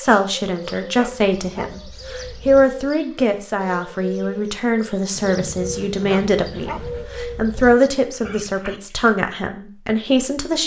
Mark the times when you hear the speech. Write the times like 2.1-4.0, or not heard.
0.0-10.6.